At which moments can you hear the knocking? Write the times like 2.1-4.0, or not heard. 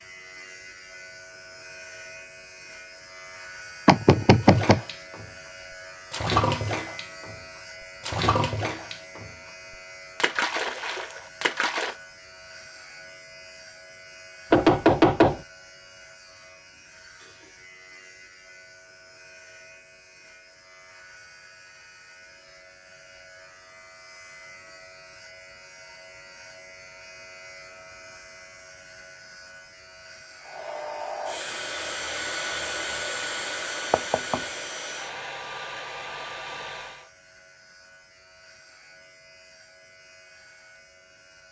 3.9-4.8, 14.5-15.4, 33.9-34.4.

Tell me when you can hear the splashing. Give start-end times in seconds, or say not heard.
4.4-5.3, 6.1-7.3, 8.0-11.9.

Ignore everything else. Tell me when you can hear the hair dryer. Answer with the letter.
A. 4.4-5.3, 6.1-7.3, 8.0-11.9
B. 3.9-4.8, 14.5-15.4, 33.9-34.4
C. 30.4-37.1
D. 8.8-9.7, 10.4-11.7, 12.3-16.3
C.